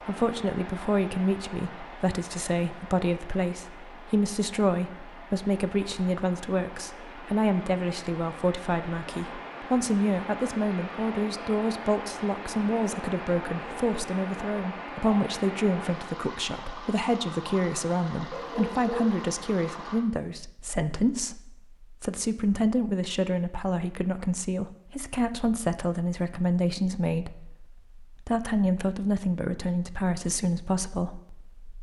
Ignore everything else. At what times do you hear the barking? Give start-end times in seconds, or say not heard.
18.3-19.2.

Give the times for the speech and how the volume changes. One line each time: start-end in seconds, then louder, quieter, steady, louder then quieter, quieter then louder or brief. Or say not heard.
0.1-31.7 steady.